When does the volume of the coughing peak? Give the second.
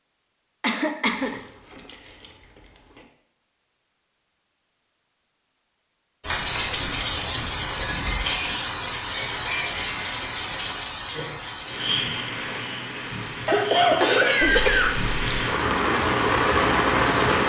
14 s.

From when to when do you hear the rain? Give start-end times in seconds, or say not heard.
6.2-17.4.